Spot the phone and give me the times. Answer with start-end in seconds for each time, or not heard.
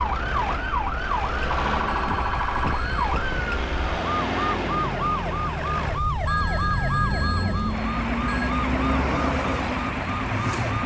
1.9-3.1, 6.2-8.6.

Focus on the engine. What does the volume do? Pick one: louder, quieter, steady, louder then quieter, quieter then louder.
steady.